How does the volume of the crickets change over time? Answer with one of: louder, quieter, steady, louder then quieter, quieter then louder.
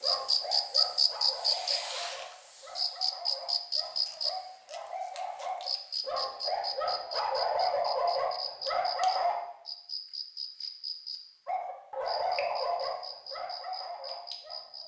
quieter.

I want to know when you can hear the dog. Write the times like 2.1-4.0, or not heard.
0.0-9.3, 11.4-14.8.